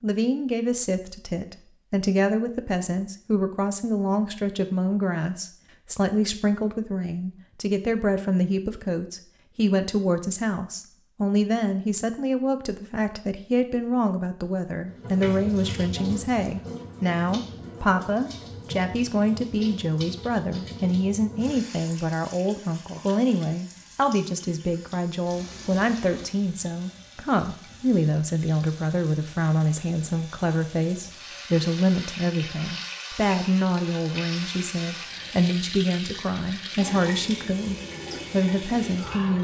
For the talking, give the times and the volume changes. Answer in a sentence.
The talking can be heard from 0.0 to 39.3 s, at a steady volume.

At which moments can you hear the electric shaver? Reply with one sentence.
You can't hear the electric shaver here.